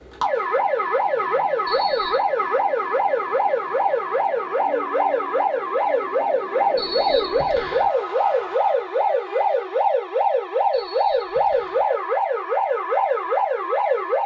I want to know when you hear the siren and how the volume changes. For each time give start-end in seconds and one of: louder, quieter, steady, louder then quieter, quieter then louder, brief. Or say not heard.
0.0-14.2 steady.